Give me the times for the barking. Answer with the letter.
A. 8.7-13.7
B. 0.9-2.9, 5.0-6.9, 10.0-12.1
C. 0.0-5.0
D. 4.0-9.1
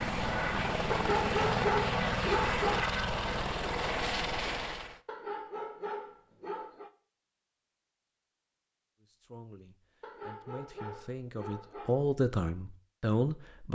B.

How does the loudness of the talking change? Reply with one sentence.
The volume of the talking goes up.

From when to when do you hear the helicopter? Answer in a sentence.
You can hear the helicopter from 0.0 to 5.0 s.